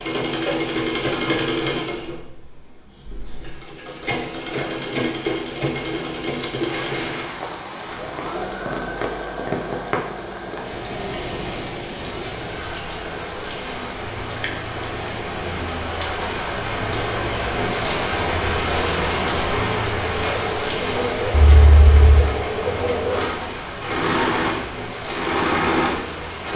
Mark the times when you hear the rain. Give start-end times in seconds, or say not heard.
6.7-26.5.